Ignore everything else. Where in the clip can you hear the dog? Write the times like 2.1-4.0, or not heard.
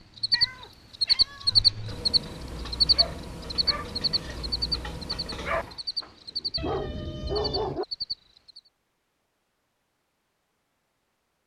1.5-7.8.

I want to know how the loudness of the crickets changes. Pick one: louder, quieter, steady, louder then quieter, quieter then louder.
quieter.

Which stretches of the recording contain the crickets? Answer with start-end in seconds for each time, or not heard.
0.1-8.6.